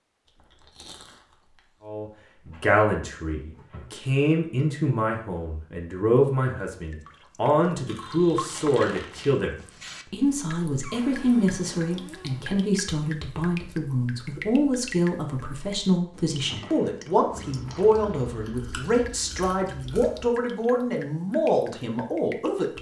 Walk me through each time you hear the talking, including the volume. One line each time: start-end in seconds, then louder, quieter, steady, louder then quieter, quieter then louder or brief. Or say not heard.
1.8-22.7 steady.